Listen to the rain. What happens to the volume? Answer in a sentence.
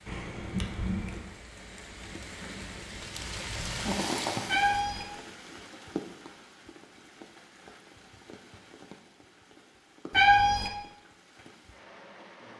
The loudness of the rain goes up, then down.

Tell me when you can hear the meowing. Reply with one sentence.
You can hear the meowing from 0.1 to 1.4 s, from 4.5 to 5.0 s and from 10.1 to 10.7 s.